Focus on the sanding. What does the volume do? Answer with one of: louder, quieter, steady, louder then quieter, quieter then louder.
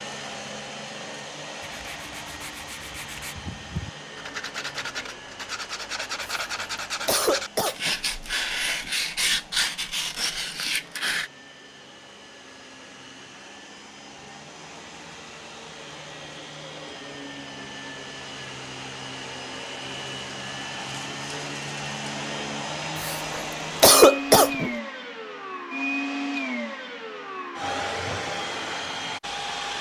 louder.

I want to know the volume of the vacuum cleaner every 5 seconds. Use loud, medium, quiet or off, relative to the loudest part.
medium, quiet, quiet, medium, loud, loud.